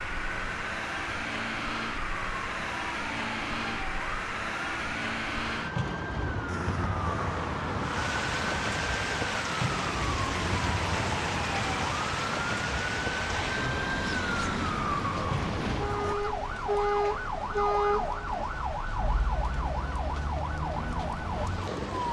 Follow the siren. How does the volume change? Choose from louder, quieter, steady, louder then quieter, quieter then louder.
louder.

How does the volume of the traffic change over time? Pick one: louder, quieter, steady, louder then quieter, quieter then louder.
steady.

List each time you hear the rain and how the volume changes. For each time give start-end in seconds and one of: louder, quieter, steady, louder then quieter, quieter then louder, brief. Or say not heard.
7.8-22.0 quieter.